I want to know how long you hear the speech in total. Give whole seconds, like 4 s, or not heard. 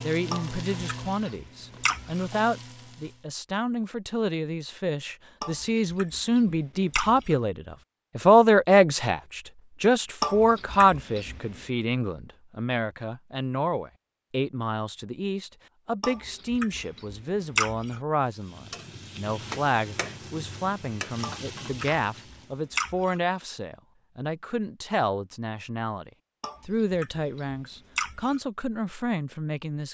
30 s.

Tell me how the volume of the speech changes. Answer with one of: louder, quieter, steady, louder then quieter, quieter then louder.
louder then quieter.